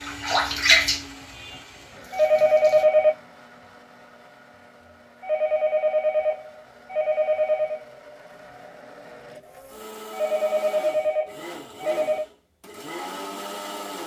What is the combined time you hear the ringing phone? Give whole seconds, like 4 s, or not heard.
6 s.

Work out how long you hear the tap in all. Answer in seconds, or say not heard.
3 s.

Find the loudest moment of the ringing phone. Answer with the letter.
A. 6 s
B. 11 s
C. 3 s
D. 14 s
C.